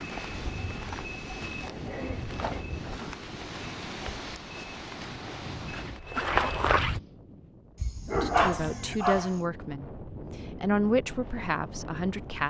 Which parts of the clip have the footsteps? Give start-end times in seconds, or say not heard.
0.0-7.0.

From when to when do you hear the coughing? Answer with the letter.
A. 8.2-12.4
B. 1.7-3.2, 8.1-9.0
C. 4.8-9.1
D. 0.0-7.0
B.